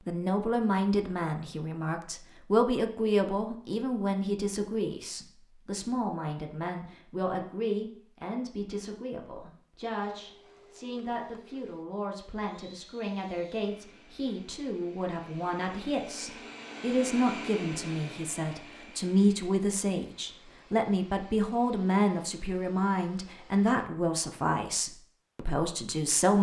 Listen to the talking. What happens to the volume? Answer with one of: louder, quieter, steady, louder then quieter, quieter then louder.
quieter then louder.